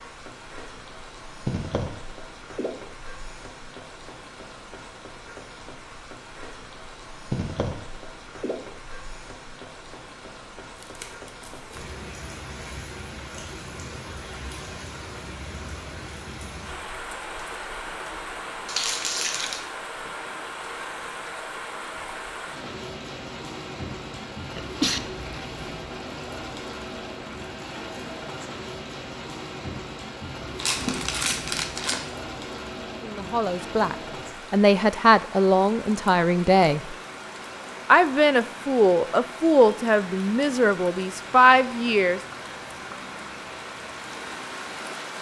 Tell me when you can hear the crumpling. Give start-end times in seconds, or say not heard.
10.8-11.8, 18.6-19.6, 30.6-32.0.